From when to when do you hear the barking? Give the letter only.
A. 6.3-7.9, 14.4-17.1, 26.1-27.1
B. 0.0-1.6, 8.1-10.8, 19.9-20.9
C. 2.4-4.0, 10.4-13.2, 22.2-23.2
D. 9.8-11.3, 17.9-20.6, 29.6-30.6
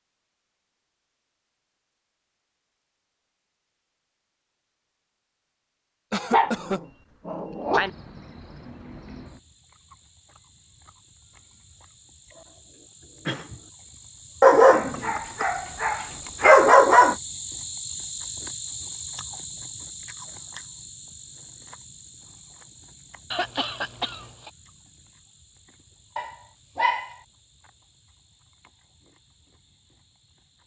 A.